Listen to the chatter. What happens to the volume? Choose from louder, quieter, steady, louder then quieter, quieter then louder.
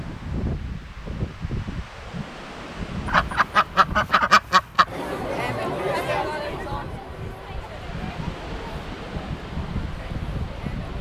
quieter.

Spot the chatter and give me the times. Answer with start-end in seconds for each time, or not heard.
4.8-10.9.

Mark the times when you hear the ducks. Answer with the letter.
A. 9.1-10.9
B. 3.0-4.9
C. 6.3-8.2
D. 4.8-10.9
B.